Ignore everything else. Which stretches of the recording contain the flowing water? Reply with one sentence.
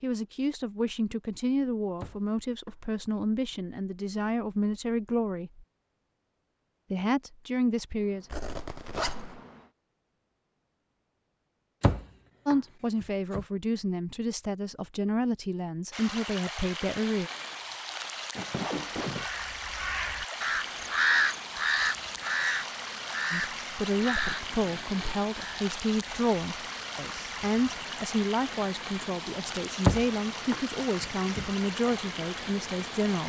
The flowing water can be heard from 15.9 to 33.2 s.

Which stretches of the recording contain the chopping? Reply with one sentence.
You can hear the chopping from 2.0 to 3.5 s, from 11.8 to 13.4 s and from 29.9 to 31.4 s.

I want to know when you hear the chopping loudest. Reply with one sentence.
The volume of the chopping peaks at 30 seconds.